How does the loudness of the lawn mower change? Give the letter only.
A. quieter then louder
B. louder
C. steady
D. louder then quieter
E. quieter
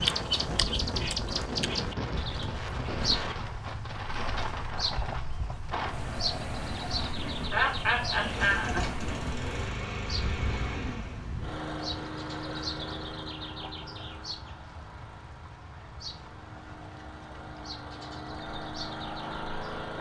A.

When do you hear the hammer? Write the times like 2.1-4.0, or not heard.
not heard.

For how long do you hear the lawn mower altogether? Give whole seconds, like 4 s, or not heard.
12 s.